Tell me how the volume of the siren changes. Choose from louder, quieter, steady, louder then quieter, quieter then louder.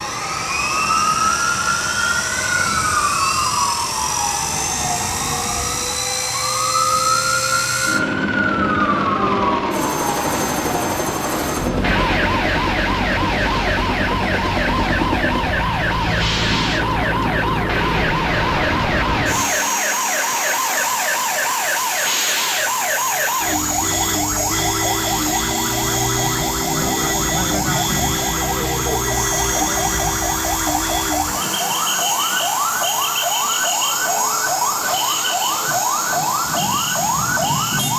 steady.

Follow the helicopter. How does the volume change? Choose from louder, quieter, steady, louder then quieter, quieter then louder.
steady.